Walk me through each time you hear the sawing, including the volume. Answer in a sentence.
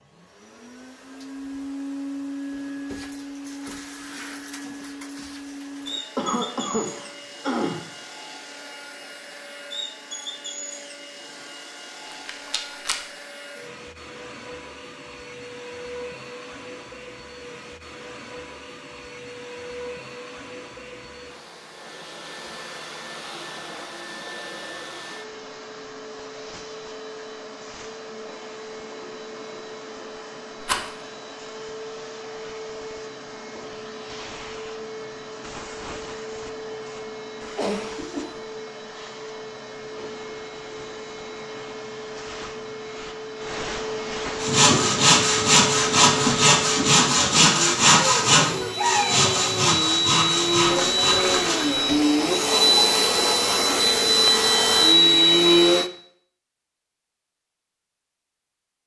The sawing can be heard from 44.4 to 53.8 s, getting quieter.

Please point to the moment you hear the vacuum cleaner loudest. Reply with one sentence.
The loudest moment of the vacuum cleaner is at 55 seconds.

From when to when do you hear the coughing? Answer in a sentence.
The coughing can be heard from 6.2 to 7.8 s and from 37.4 to 38.3 s.